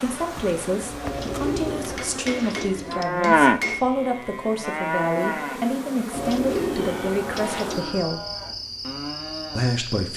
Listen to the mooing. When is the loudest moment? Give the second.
3 s.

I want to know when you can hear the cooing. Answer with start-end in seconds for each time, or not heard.
1.0-3.0, 6.1-8.0.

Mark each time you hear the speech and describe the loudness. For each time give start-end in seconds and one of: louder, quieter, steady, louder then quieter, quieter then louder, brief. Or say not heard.
0.0-8.2 steady
9.6-10.1 brief.